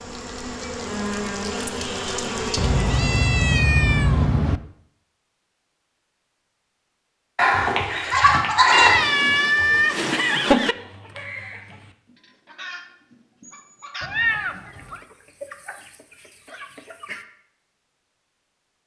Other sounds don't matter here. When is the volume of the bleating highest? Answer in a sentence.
The volume of the bleating peaks at 9 seconds.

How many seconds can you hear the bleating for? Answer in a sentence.
The bleating can be heard for 2 seconds in total.